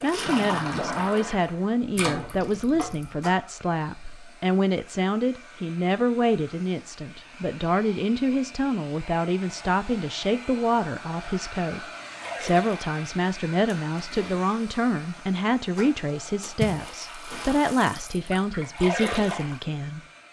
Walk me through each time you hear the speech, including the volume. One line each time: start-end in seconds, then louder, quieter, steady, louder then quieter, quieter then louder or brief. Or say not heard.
0.0-20.0 steady.